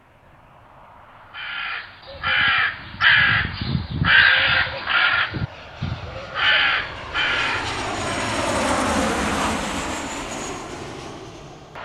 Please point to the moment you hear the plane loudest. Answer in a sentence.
The volume of the plane peaks at 9 seconds.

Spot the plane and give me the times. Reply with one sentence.
You can hear the plane from 0.2 to 11.7 s.